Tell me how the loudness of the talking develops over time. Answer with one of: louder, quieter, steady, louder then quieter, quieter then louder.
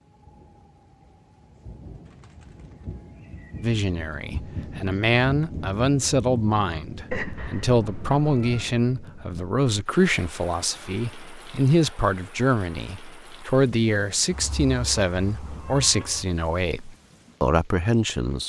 steady.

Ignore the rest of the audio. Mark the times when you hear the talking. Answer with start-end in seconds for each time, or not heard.
3.6-18.4.